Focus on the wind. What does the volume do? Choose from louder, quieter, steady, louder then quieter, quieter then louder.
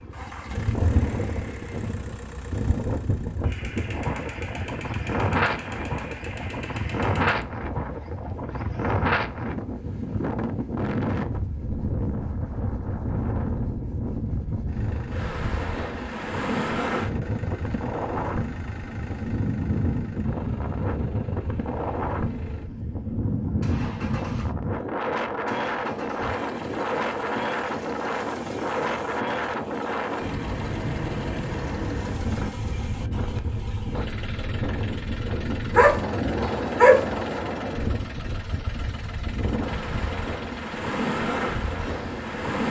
steady.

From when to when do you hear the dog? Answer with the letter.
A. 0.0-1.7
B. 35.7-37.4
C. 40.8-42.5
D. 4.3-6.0
B.